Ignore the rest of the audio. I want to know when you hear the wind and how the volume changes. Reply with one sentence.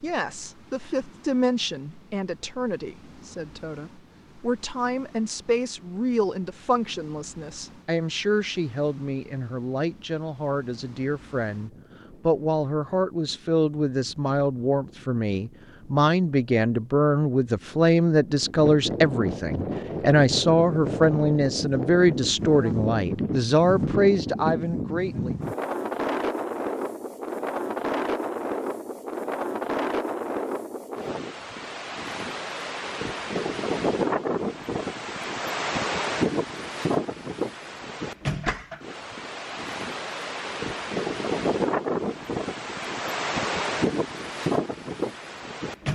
The wind can be heard from 0.0 to 45.8 s, getting louder.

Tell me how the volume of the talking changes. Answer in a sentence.
The loudness of the talking goes up.